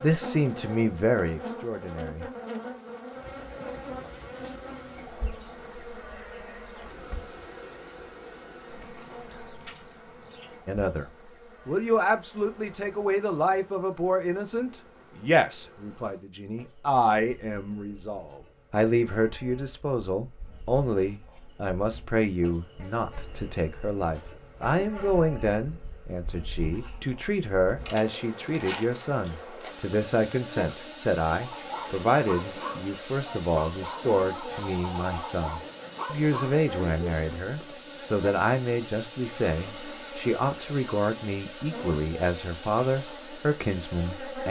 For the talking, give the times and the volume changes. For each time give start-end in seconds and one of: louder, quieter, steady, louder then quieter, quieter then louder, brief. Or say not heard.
0.0-2.2 brief
10.7-44.4 steady.